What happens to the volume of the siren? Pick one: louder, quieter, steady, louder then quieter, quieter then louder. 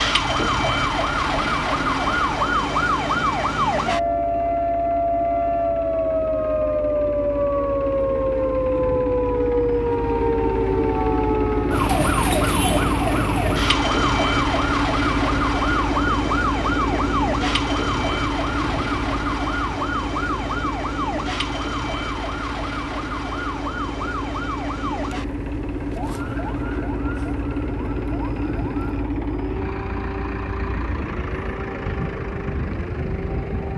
quieter.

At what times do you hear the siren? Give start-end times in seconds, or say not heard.
0.0-33.7.